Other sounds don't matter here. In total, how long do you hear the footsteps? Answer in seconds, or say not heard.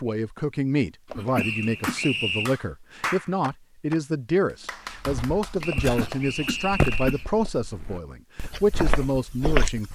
5 s.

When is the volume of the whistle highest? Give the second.
2 s.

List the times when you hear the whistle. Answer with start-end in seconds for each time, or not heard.
1.4-2.5, 5.6-7.2.